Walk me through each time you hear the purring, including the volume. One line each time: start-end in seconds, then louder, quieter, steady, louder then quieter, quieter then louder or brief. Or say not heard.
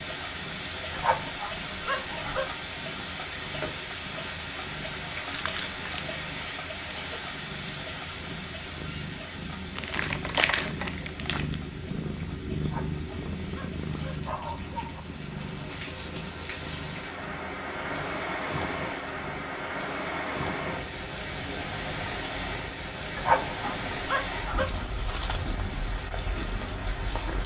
0.0-27.4 louder then quieter.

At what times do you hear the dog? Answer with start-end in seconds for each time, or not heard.
0.9-2.5, 12.6-15.1, 23.1-24.6.